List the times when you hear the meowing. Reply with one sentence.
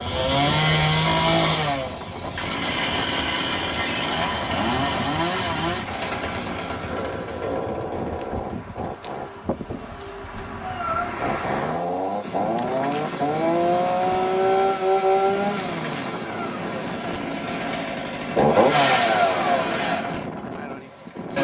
You can hear the meowing from 10.3 to 11.3 s.